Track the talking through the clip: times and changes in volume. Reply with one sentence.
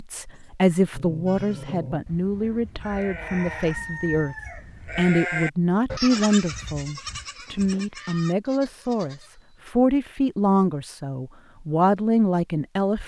You can hear the talking from 0.0 to 13.0 s, at a steady volume.